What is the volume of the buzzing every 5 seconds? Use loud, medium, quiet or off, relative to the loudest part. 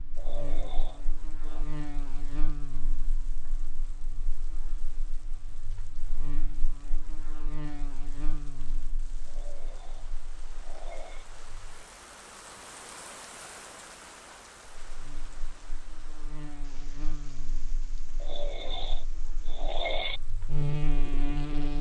quiet, quiet, quiet, quiet, loud.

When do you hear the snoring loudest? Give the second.
20 s.